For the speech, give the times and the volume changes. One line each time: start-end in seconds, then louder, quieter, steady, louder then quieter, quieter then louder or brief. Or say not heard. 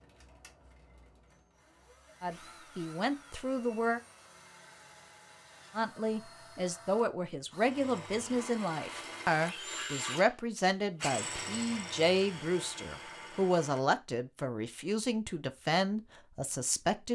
2.2-4.0 brief
5.8-17.0 steady.